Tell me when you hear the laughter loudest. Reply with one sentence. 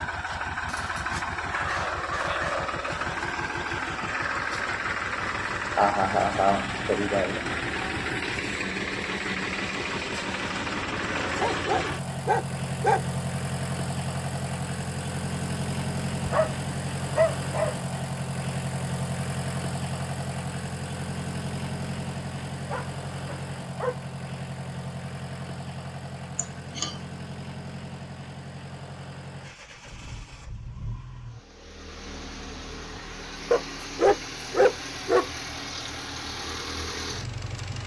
The loudest moment of the laughter is at 6 seconds.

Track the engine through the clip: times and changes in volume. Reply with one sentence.
You can hear the engine from 0.0 to 37.8 s, getting quieter.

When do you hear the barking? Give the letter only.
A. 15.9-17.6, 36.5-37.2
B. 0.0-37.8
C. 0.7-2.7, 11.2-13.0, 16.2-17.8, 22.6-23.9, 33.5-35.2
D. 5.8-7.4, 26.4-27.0
C.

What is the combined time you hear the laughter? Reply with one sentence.
You can hear the laughter for 2 seconds altogether.